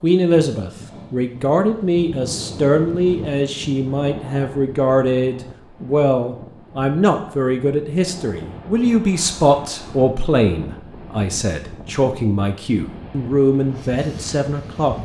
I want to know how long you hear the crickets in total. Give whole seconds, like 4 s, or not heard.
not heard.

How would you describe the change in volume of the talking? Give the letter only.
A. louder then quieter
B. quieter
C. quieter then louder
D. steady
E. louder
D.